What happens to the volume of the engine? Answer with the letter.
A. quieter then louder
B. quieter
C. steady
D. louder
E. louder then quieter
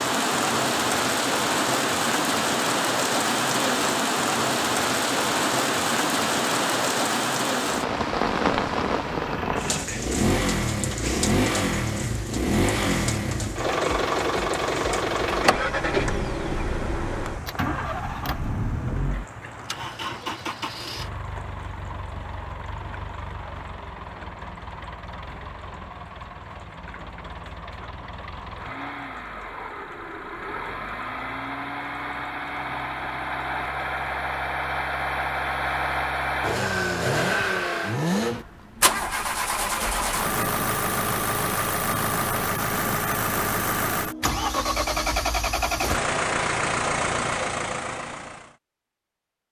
A.